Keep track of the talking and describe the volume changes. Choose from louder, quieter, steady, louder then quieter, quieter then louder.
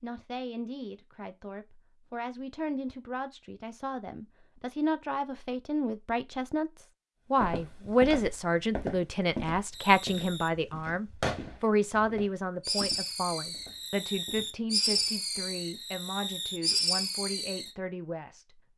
louder then quieter.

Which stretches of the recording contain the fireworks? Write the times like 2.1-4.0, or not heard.
9.7-17.7.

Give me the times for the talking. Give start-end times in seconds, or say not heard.
0.0-18.4.